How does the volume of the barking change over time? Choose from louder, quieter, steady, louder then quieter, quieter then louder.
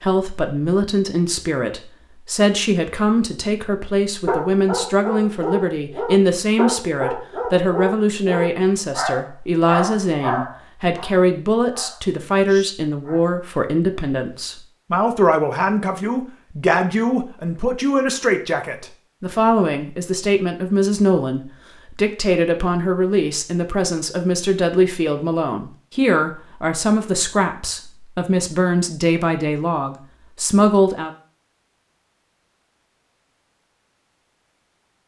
quieter.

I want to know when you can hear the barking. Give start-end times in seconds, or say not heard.
4.2-13.2.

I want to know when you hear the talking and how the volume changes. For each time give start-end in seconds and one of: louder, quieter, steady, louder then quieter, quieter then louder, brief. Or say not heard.
0.0-31.1 steady.